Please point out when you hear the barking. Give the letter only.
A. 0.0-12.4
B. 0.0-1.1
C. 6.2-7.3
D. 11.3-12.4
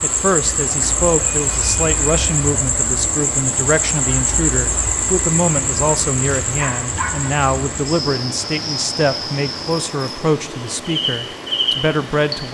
C.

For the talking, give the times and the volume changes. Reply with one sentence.
You can hear the talking from 0.0 to 12.4 s, at a steady volume.